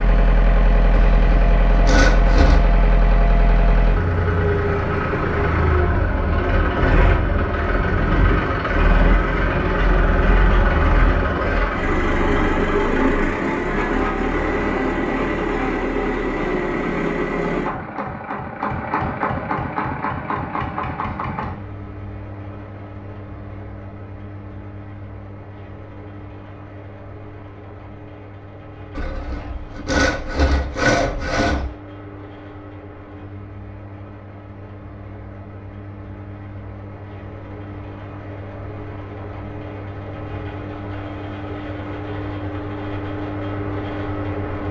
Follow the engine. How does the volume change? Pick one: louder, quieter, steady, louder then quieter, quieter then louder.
quieter then louder.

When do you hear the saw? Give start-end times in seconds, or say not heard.
0.9-2.7, 28.9-31.6.